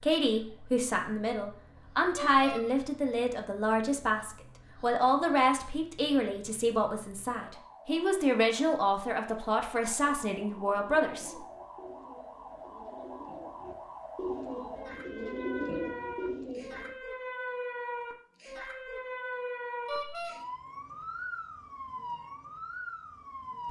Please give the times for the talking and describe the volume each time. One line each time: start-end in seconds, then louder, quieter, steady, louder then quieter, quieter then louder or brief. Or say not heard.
0.0-11.3 steady.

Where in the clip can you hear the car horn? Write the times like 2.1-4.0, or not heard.
2.1-2.6, 19.9-20.4.